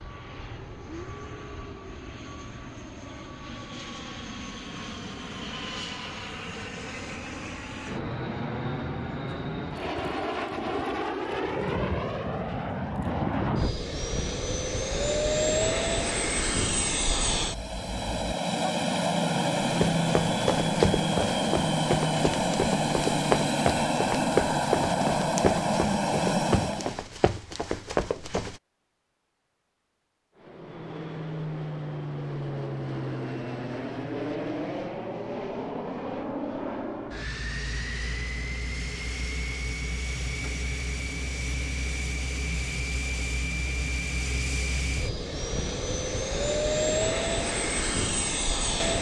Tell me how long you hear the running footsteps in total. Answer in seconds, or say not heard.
9 s.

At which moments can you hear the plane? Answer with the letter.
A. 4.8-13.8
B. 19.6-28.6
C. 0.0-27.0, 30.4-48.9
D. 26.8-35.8
C.